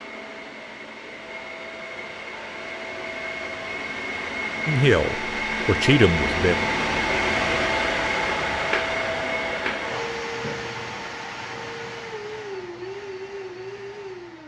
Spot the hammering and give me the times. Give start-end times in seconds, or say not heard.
not heard.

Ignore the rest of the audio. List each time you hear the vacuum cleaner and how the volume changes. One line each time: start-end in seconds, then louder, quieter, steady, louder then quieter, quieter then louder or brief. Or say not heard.
0.0-14.4 louder then quieter.